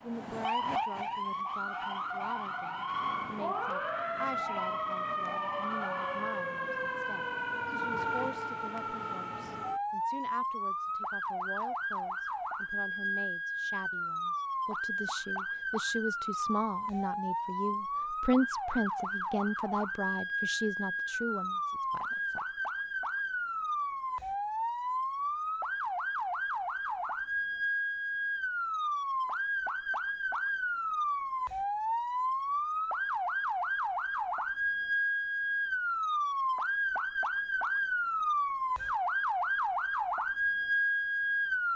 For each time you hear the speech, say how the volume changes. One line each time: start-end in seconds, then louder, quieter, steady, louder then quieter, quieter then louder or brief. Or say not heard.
0.0-22.4 louder.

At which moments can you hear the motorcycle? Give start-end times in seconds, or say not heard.
not heard.